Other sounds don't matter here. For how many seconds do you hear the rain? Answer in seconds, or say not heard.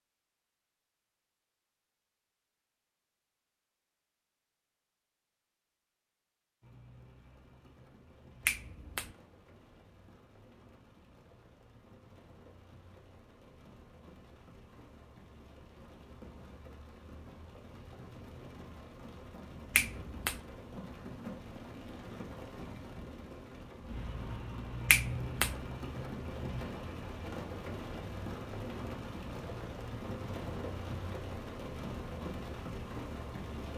27 s.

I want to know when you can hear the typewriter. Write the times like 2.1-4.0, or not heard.
not heard.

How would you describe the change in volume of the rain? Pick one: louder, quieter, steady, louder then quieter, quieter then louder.
louder.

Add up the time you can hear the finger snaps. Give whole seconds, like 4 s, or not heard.
2 s.